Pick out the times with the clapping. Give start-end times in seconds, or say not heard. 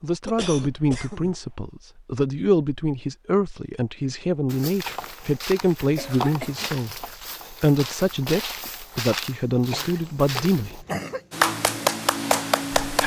11.3-13.0.